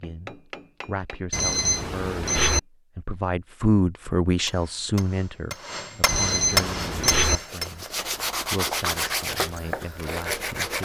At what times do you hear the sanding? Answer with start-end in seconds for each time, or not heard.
6.8-10.8.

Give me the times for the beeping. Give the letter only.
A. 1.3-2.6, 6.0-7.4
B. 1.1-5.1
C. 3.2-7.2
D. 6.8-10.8
A.